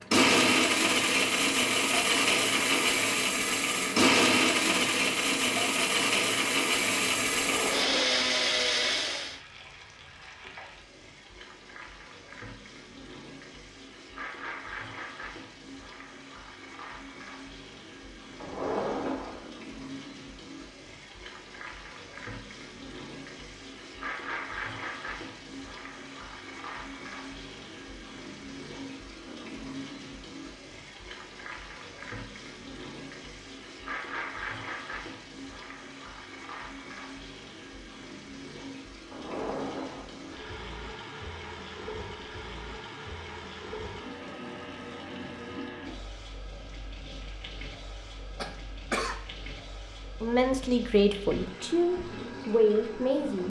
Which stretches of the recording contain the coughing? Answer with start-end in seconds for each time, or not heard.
48.4-49.1.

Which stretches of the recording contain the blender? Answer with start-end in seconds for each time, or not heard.
0.1-9.4.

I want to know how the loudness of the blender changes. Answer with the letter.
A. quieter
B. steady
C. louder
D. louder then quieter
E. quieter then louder
B.